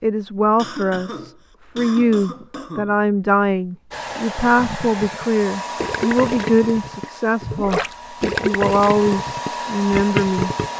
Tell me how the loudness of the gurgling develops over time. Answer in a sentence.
The loudness of the gurgling goes up.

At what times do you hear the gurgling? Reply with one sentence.
The gurgling can be heard from 4.4 to 10.7 s.